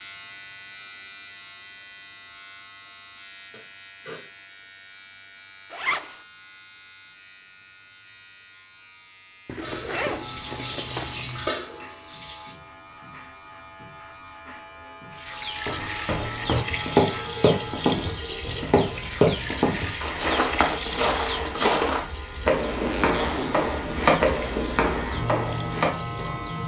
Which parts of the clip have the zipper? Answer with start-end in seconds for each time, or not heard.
5.7-6.2, 9.4-11.5, 22.6-24.1.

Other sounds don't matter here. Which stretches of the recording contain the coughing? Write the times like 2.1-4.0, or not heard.
3.5-4.2.